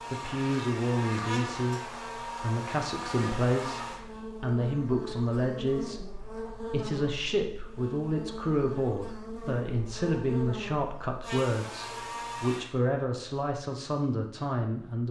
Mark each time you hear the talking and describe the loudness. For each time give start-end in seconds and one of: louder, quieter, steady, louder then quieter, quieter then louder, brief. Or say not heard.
0.1-15.0 steady.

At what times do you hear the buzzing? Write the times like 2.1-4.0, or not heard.
0.0-12.7.